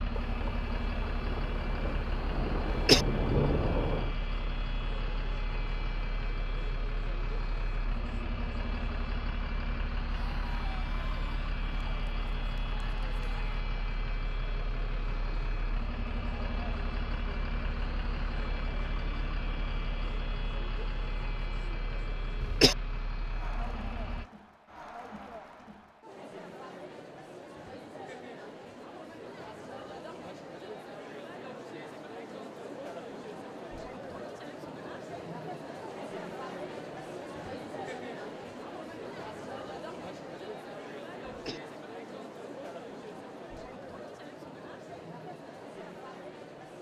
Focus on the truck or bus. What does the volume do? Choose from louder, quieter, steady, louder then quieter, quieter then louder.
steady.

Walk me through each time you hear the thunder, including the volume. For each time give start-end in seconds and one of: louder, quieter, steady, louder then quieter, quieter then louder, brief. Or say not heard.
0.1-4.2 louder.